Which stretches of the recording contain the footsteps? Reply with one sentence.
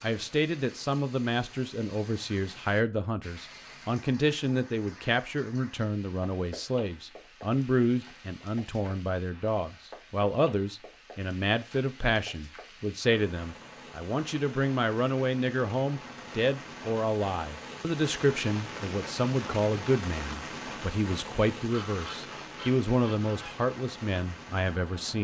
You can't hear the footsteps here.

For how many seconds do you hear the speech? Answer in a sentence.
You can hear the speech for 25 seconds altogether.